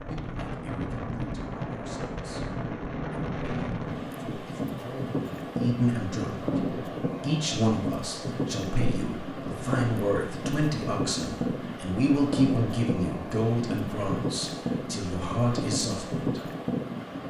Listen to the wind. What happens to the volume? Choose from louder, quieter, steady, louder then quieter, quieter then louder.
steady.